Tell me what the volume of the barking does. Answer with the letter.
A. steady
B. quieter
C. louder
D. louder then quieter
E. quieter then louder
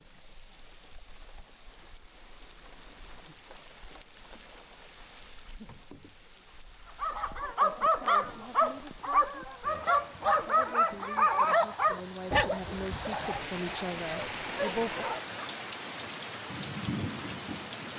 B.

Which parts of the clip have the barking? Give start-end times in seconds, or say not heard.
7.0-15.3.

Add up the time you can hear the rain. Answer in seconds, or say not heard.
18 s.